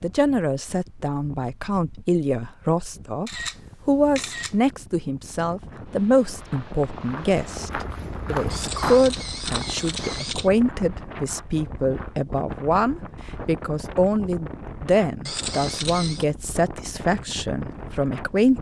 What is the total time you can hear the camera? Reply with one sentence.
You can hear the camera for 4 seconds altogether.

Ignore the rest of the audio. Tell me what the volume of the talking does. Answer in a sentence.
The volume of the talking stays about the same.